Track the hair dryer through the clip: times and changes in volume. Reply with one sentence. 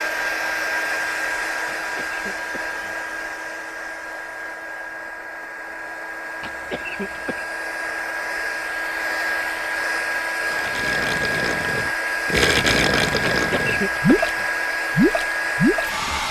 The hair dryer can be heard from 0.0 to 16.2 s, getting quieter then louder.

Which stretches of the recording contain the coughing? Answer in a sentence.
You can hear the coughing from 1.8 to 3.1 s, from 6.4 to 7.5 s and from 13.3 to 14.4 s.